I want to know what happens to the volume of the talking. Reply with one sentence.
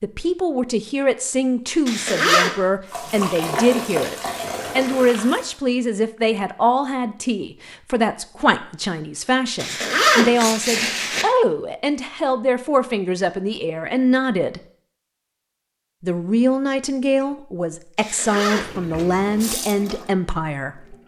The loudness of the talking stays about the same.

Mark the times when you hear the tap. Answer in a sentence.
The tap can be heard from 2.9 to 5.6 s and from 18.6 to 21.0 s.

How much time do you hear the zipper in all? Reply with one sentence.
The zipper can be heard for 3 seconds in total.